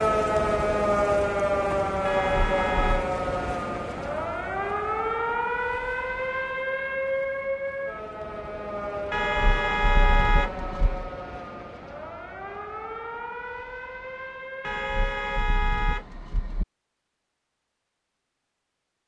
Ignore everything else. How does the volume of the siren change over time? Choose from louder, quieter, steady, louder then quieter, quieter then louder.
quieter.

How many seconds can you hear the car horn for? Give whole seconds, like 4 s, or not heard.
5 s.